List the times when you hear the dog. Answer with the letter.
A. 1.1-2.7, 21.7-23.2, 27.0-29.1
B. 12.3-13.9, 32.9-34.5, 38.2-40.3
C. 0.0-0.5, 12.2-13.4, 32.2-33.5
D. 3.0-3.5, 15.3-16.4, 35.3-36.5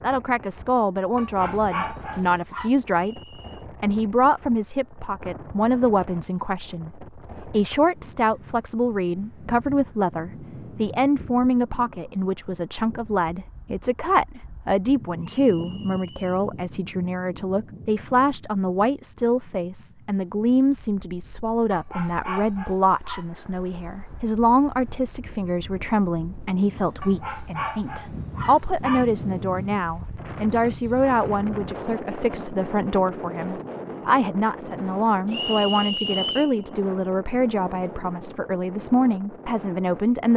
A.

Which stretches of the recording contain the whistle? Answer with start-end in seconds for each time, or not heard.
3.0-3.5, 15.3-16.4, 35.3-36.5.